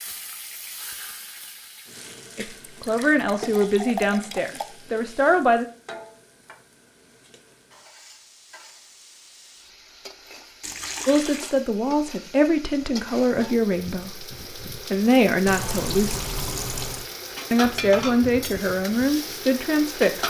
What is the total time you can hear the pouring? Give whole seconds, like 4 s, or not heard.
5 s.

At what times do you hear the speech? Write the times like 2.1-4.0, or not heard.
2.4-5.7, 11.1-16.2, 17.5-20.2.